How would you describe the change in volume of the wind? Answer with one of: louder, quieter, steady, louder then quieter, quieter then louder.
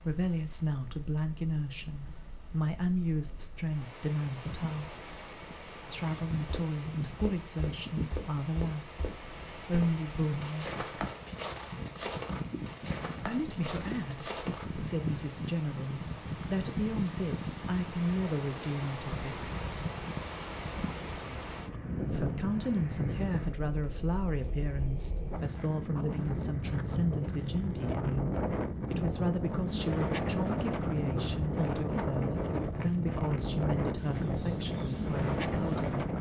louder.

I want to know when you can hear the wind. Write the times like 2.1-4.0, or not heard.
0.0-36.1.